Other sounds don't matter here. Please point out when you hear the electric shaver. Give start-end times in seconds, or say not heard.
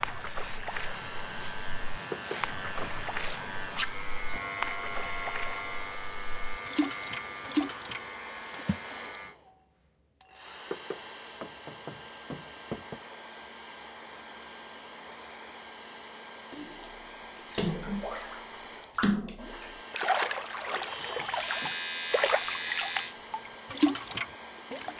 0.0-9.3, 20.8-23.1.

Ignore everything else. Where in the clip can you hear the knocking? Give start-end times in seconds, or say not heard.
2.1-2.9, 10.7-13.0, 20.0-21.8.